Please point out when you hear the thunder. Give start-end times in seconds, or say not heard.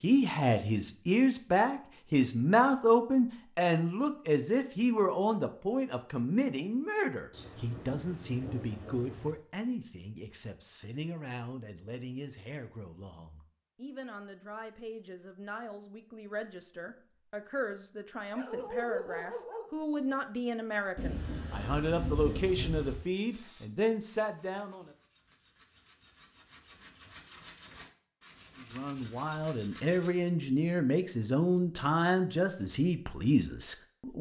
7.3-9.3, 20.9-23.0.